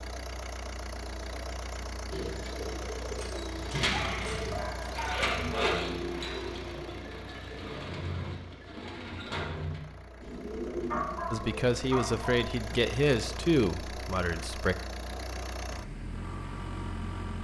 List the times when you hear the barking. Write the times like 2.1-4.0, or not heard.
3.1-5.5, 10.9-12.5.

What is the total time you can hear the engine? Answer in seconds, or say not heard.
17 s.